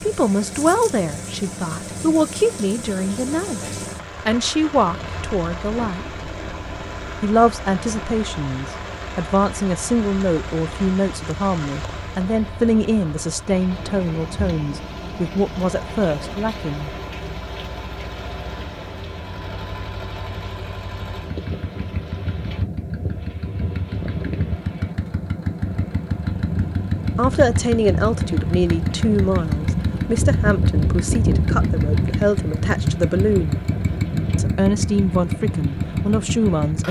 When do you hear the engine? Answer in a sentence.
The engine can be heard from 0.0 to 36.8 s.